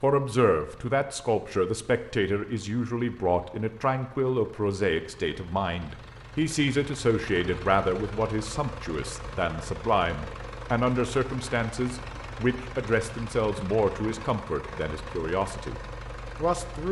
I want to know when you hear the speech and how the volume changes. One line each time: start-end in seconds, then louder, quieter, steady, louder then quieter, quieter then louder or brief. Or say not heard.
0.0-16.8 steady.